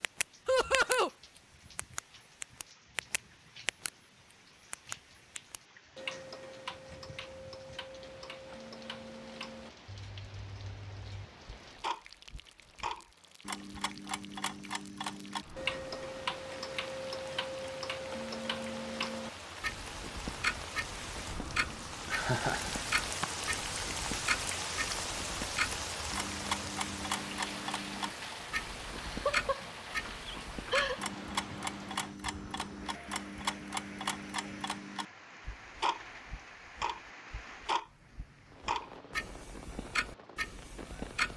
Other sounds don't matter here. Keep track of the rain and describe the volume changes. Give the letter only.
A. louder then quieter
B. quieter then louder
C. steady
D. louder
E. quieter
A.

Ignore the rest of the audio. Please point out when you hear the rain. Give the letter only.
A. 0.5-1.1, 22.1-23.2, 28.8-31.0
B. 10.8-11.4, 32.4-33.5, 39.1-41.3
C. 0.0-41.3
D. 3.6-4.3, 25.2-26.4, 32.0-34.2
C.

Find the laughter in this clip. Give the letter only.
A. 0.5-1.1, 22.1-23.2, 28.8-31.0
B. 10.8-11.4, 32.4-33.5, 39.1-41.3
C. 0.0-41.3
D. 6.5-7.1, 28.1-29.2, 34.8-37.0
A.